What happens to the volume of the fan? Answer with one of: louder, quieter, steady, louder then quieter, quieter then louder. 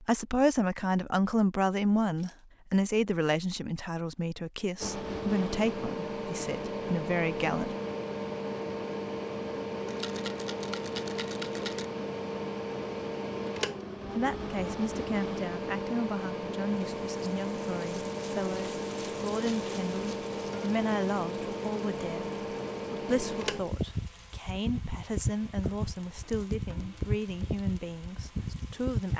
steady.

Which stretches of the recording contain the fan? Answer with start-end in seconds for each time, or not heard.
4.8-29.1.